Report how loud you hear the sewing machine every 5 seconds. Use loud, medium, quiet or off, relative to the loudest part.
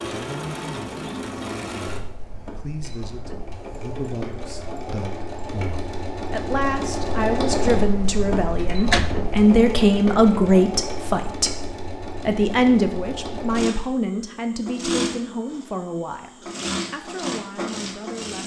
medium, loud, loud, loud.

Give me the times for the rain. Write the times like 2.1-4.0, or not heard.
not heard.